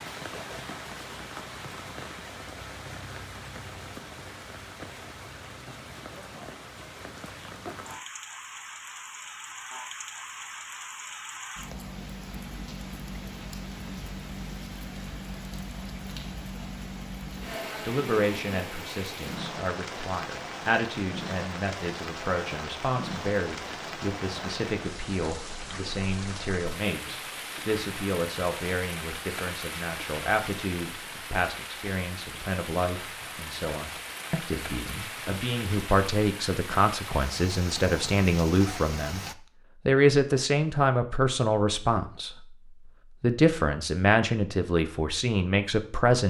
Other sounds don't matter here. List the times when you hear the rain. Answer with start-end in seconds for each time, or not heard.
0.0-39.4.